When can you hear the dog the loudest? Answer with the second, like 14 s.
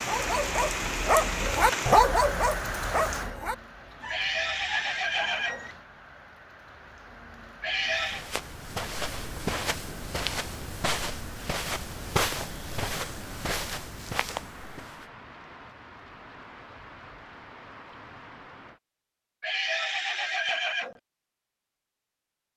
2 s.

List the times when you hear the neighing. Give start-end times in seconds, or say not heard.
4.0-5.7, 7.6-8.2, 19.4-21.0.